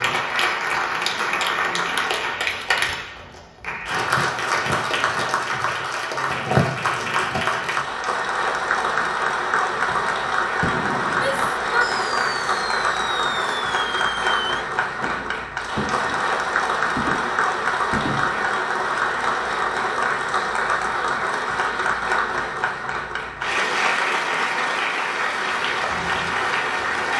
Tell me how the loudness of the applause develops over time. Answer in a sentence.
The loudness of the applause stays about the same.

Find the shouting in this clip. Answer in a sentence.
The shouting can be heard from 11.2 to 11.9 s.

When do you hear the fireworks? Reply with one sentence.
You can hear the fireworks from 9.8 to 18.5 s.